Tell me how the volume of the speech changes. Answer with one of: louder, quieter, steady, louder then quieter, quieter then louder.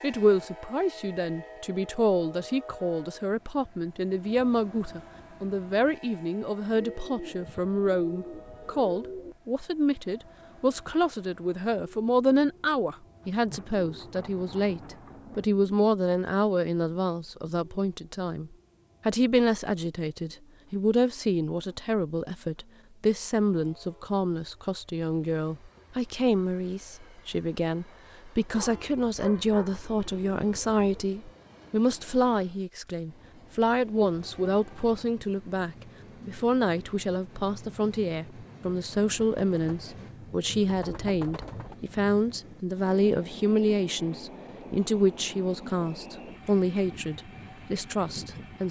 steady.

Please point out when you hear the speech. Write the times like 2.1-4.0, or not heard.
0.0-48.6.